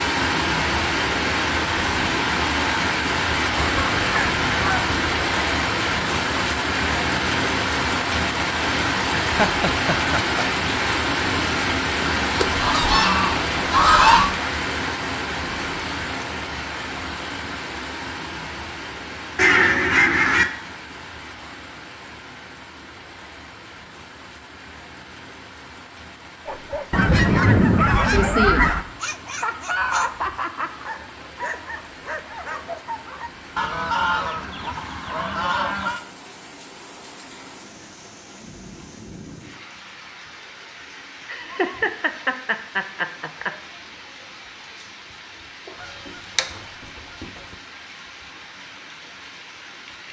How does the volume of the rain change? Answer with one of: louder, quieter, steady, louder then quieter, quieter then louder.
quieter.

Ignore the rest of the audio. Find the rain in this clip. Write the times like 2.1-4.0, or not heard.
0.0-50.0.